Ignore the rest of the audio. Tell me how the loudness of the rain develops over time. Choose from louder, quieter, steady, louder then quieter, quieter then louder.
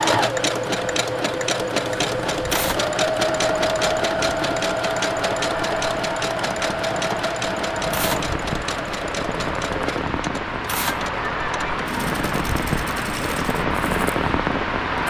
louder.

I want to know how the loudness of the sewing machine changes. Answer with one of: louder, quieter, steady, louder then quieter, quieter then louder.
quieter.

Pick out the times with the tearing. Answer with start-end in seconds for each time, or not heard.
2.5-2.9, 7.9-8.3, 10.7-11.1.